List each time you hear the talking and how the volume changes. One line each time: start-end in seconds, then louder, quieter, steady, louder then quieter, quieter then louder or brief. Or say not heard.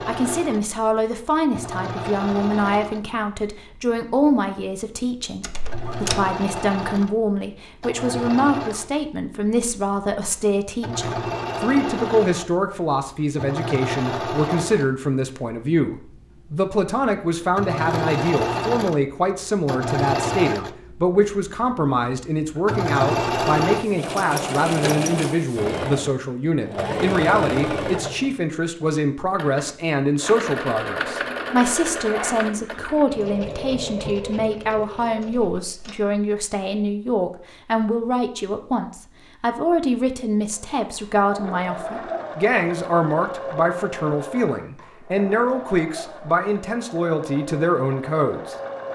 0.1-48.5 steady.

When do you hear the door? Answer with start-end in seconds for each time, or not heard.
5.4-6.3, 35.2-36.1.